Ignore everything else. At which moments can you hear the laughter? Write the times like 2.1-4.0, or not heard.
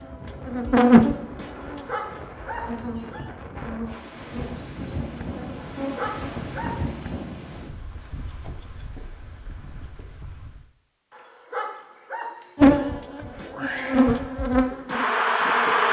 not heard.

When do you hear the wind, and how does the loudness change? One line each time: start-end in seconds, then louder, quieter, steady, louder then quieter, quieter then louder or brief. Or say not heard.
0.0-10.7 louder then quieter.